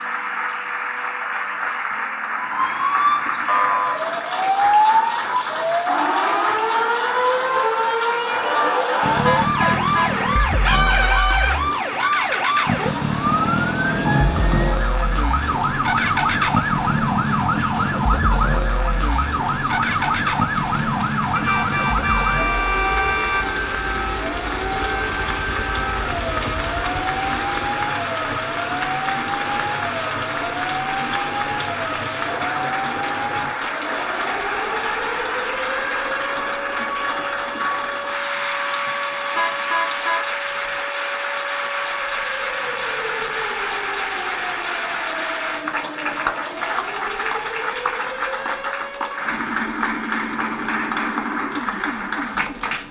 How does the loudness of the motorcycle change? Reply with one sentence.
The volume of the motorcycle goes down.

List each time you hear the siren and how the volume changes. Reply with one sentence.
The siren can be heard from 2.4 to 52.8 s, getting quieter.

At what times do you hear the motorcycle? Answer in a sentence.
You can hear the motorcycle from 9.0 to 27.7 s.